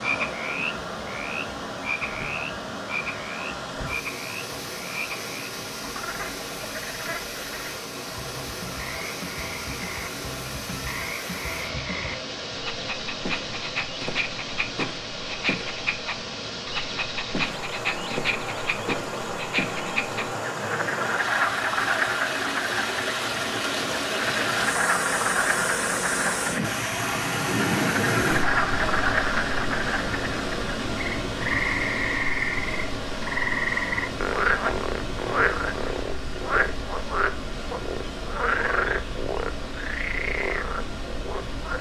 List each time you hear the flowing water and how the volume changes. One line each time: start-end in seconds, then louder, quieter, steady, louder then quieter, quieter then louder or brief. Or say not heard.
0.0-41.7 louder then quieter.